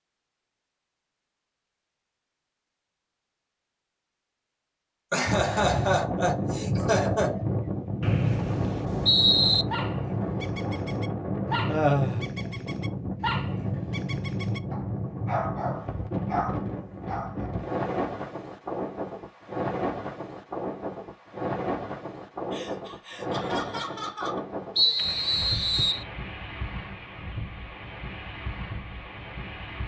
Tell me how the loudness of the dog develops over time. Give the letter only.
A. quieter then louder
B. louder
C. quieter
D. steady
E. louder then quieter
B.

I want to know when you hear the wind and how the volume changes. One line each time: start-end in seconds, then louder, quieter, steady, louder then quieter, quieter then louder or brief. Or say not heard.
5.2-29.8 quieter.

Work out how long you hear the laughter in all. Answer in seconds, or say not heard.
5 s.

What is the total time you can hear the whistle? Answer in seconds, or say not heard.
3 s.